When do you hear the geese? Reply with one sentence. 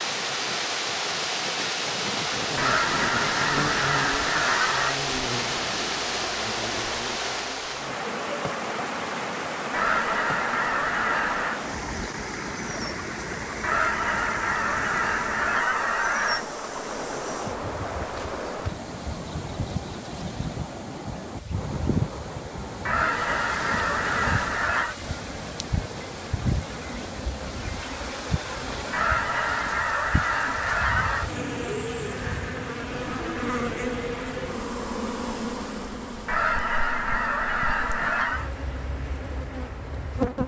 You can hear the geese from 2.5 to 5.0 s, from 9.7 to 11.6 s, from 13.6 to 16.4 s, from 22.9 to 24.9 s, from 28.9 to 31.3 s and from 36.2 to 38.5 s.